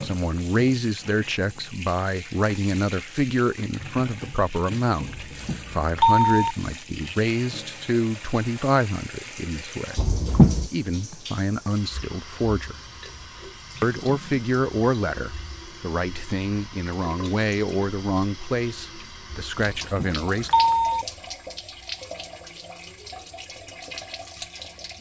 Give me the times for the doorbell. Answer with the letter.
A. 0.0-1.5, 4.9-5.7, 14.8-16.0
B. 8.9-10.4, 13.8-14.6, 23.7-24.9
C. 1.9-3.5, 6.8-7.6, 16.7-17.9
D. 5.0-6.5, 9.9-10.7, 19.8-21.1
D.